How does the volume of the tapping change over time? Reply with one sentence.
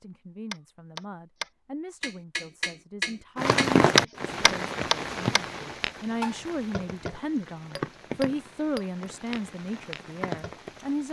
The volume of the tapping goes up, then down.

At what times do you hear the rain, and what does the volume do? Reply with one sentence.
You can hear the rain from 3.4 to 11.0 s, getting quieter.